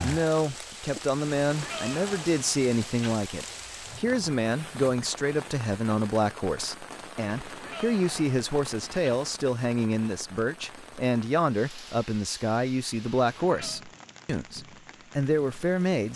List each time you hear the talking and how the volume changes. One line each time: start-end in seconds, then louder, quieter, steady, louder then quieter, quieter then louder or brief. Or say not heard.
0.0-16.1 steady.